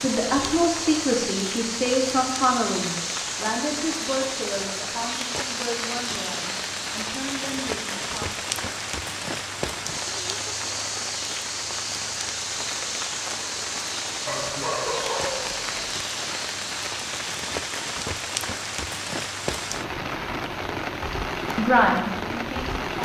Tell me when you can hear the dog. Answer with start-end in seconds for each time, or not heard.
14.2-15.9.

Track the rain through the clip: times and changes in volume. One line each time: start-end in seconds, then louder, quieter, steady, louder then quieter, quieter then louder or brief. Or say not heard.
0.0-23.0 steady.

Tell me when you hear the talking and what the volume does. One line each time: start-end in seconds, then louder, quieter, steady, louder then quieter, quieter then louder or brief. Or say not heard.
0.0-8.6 quieter
21.6-23.0 brief.